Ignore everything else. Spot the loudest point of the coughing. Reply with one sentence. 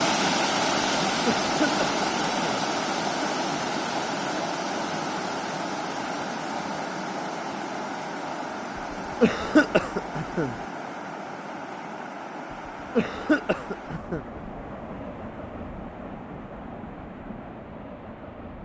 The loudest moment of the coughing is at 10 seconds.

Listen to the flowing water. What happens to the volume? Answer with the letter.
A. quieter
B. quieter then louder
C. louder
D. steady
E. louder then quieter
A.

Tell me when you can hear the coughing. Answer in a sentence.
You can hear the coughing from 1.2 to 2.5 s, from 9.2 to 10.6 s and from 12.9 to 14.2 s.